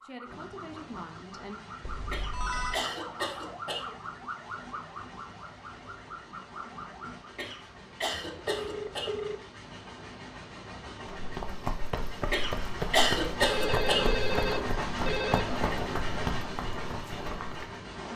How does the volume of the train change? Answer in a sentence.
The volume of the train goes up.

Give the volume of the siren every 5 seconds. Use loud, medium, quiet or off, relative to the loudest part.
loud, loud, off, off.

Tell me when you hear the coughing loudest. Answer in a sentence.
The loudest moment of the coughing is at 13 seconds.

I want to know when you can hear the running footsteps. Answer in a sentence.
The running footsteps can be heard from 11.2 to 17.8 s.